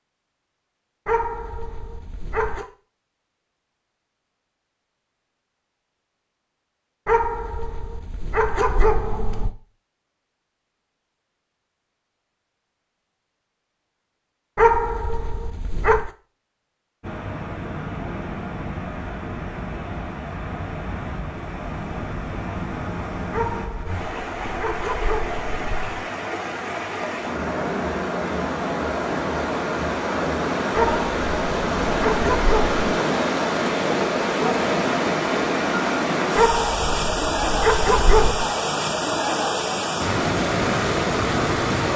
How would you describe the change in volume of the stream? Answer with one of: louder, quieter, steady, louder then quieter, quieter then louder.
louder.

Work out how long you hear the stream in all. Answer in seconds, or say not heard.
25 s.